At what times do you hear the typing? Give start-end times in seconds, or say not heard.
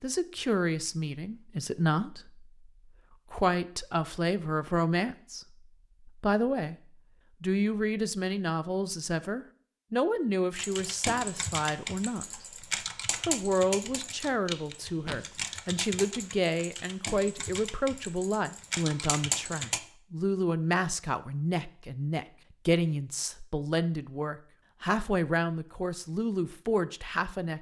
10.6-19.8.